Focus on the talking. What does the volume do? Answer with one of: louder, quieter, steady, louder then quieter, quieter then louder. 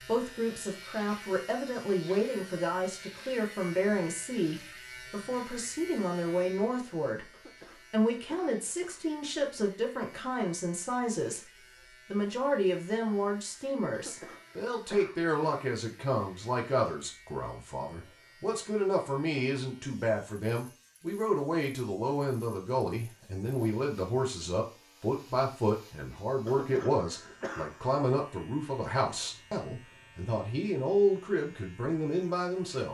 steady.